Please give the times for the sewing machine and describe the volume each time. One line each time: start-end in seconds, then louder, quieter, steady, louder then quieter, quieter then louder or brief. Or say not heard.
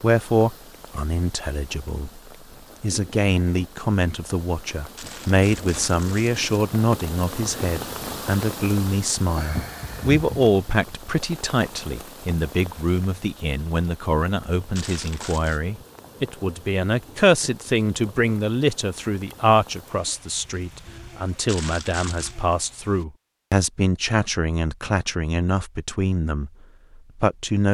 not heard.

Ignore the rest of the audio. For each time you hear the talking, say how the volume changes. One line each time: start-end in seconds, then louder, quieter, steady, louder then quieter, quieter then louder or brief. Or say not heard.
0.0-2.2 brief
2.8-27.6 steady.